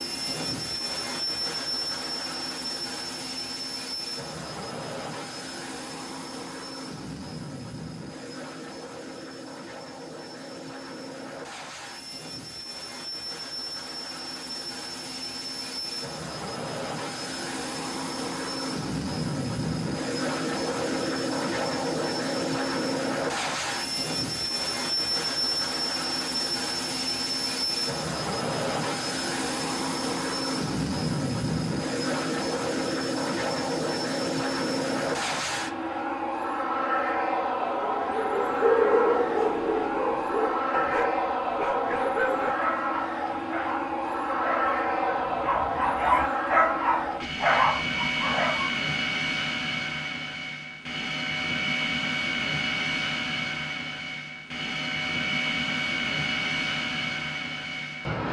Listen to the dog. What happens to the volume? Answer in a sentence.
The loudness of the dog goes down, then up.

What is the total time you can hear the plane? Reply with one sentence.
You can hear the plane for 58 seconds altogether.